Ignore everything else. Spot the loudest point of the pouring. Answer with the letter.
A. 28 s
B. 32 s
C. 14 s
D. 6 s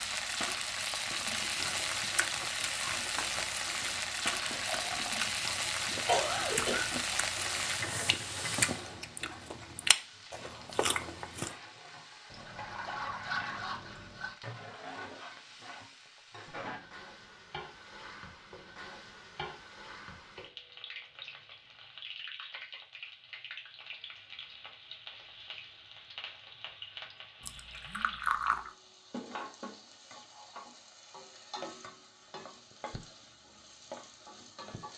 A.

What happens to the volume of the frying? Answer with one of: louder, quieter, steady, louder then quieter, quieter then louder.
quieter.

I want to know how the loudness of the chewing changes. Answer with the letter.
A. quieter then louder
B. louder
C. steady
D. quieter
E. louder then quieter
B.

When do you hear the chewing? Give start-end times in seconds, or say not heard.
1.1-11.6.